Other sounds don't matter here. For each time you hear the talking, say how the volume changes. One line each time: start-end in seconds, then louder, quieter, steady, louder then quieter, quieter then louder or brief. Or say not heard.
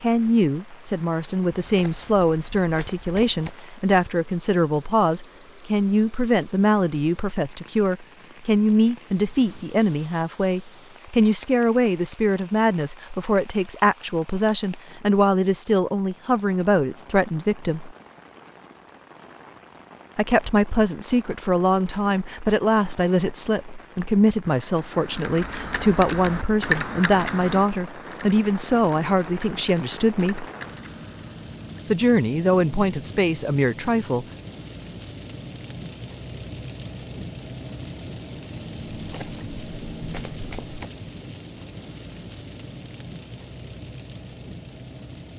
0.0-17.9 steady
20.1-30.4 steady
31.9-34.2 brief.